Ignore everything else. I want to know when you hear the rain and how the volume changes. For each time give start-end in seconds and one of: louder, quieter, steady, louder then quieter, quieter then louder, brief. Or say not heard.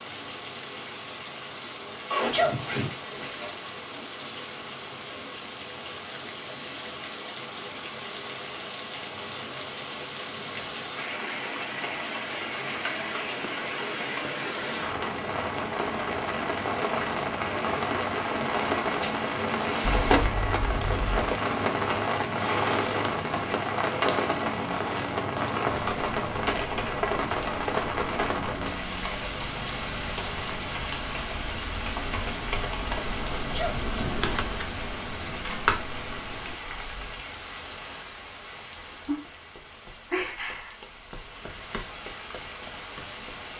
0.0-43.5 louder then quieter.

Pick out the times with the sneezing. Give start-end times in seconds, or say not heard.
2.3-2.9, 33.5-34.2.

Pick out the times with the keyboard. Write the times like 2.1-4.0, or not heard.
25.6-37.2.